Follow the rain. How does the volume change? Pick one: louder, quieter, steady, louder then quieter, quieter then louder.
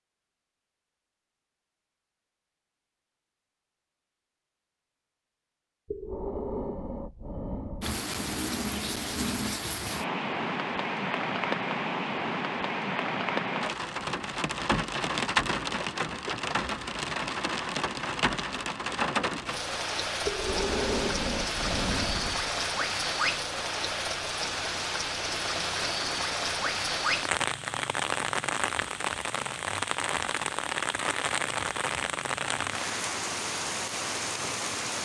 steady.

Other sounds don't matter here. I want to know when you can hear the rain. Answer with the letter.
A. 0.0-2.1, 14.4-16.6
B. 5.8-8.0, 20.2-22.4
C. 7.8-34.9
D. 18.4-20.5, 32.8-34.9
C.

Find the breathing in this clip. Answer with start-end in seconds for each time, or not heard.
5.8-8.0, 20.2-22.4.